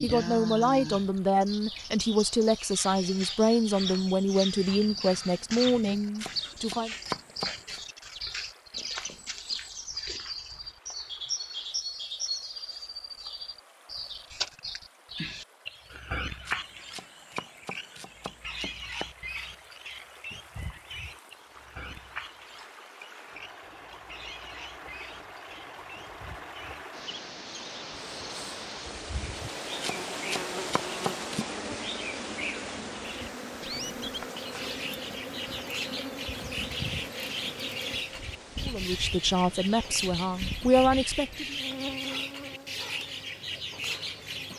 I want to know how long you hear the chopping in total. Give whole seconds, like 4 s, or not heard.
6 s.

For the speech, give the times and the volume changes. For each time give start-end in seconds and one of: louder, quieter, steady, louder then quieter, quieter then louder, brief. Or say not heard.
0.0-6.9 steady
38.6-41.5 brief.